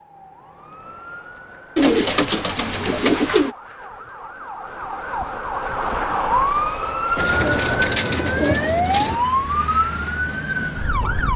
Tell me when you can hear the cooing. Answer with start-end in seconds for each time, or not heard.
1.8-3.5, 7.2-9.2.